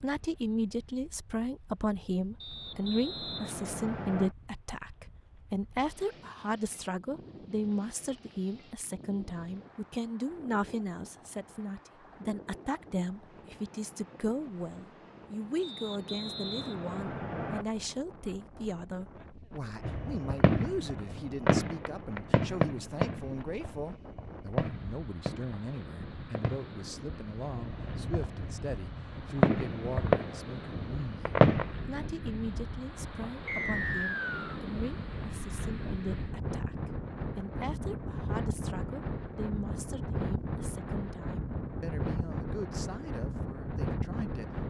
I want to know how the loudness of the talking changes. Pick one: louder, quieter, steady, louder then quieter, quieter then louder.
quieter.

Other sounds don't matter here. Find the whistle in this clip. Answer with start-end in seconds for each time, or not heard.
2.4-4.3, 15.6-17.6, 33.5-34.6.